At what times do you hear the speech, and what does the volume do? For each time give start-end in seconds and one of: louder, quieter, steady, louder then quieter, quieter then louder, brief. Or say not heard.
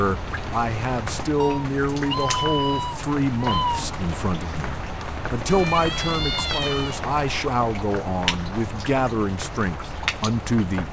0.0-10.8 steady.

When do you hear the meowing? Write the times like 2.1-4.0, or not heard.
1.4-3.9, 5.5-7.0.